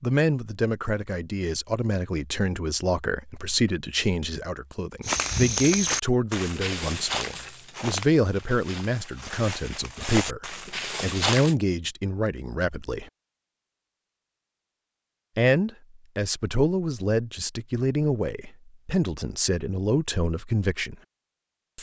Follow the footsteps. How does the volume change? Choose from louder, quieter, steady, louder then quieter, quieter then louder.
quieter then louder.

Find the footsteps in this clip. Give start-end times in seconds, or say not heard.
5.0-11.6.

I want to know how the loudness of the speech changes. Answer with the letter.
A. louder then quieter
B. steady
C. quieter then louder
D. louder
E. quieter
B.